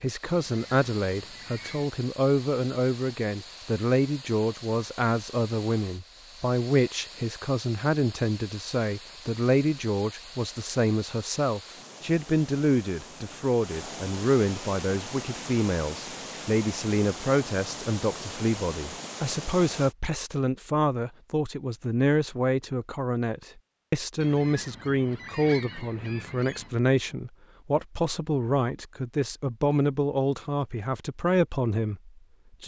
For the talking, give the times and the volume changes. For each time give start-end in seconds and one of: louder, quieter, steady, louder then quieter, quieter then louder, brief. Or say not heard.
0.0-32.6 steady.